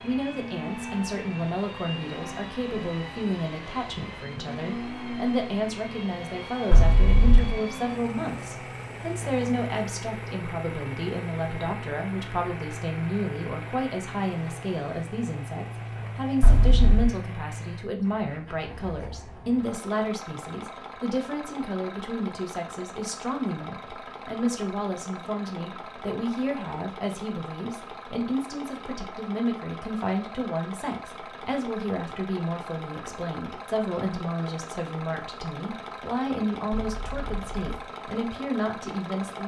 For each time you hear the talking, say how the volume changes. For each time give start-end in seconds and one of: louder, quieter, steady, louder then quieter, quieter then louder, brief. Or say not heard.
0.0-39.4 steady.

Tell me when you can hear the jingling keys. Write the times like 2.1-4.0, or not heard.
6.7-7.6, 16.4-17.1, 36.7-37.6.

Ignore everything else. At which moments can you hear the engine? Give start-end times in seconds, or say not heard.
0.0-39.4.